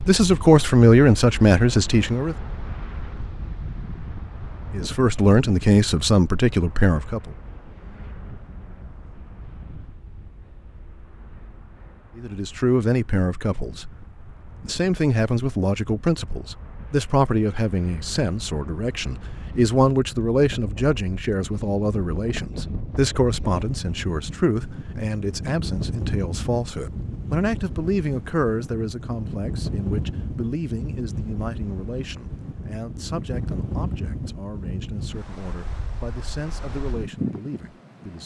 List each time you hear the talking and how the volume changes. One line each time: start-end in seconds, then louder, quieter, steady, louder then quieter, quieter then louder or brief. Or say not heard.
0.0-2.4 brief
4.7-7.3 brief
12.2-13.9 brief
14.6-38.2 quieter.